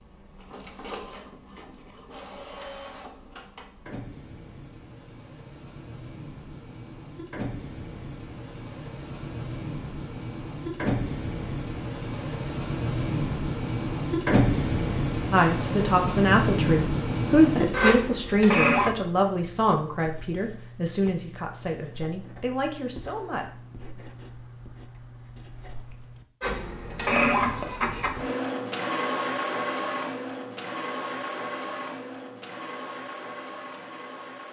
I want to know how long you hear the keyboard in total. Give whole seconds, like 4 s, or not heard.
not heard.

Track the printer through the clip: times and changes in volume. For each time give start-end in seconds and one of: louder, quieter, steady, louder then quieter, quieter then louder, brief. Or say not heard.
0.0-18.9 louder
26.4-34.4 quieter.